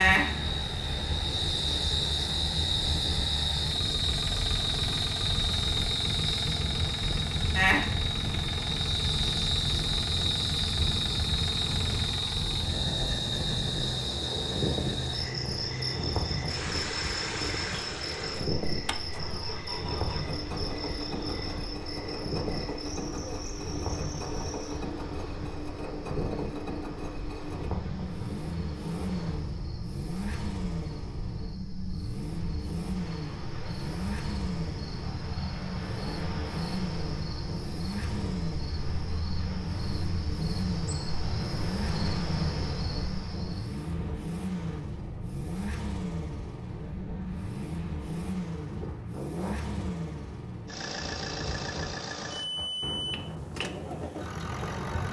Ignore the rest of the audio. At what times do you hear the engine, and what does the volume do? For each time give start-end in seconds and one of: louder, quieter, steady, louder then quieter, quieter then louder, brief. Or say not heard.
0.1-55.0 steady.